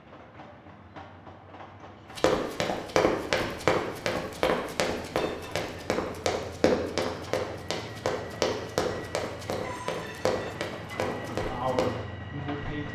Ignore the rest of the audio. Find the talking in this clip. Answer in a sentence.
The talking can be heard from 11.3 to 12.9 s.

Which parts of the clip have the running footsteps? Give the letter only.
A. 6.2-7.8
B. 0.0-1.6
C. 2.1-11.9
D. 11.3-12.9
C.